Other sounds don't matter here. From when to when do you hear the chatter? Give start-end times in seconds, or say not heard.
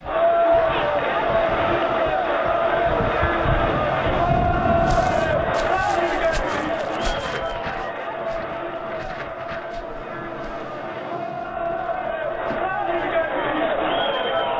0.0-14.5.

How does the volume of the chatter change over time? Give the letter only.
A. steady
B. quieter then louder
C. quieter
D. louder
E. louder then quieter
B.